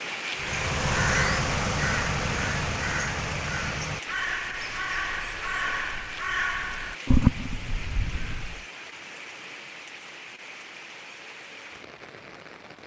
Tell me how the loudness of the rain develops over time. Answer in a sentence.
The loudness of the rain goes down.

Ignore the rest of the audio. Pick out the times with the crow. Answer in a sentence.
The crow can be heard from 0.3 to 8.6 s.